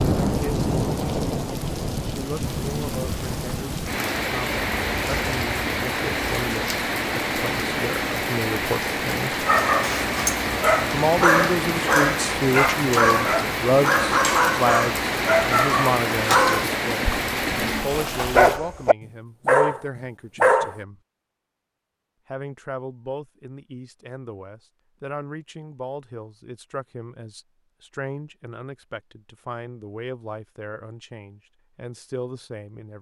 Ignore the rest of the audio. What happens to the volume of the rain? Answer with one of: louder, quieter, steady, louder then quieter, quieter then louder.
steady.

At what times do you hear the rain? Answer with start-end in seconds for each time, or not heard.
0.0-18.6.